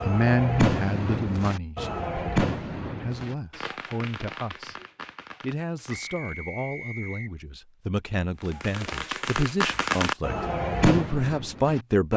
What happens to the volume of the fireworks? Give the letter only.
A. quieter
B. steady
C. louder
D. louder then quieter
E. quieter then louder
E.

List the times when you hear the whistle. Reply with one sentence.
The whistle can be heard from 5.8 to 7.3 s.